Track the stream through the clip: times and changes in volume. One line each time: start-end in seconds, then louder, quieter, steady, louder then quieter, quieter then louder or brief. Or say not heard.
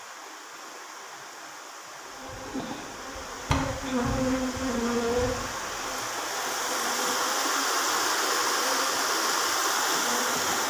0.0-10.6 louder.